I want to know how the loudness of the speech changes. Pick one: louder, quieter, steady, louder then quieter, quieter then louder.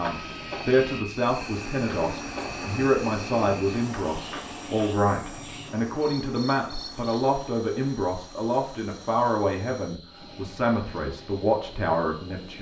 steady.